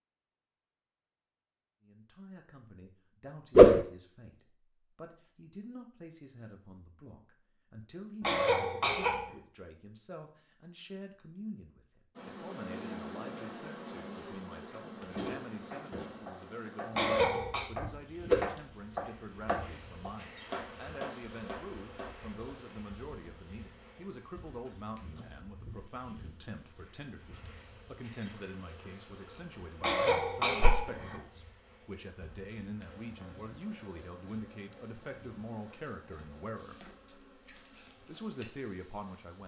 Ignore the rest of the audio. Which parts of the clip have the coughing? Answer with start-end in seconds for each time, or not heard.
8.2-9.3, 16.9-17.6, 29.8-31.2.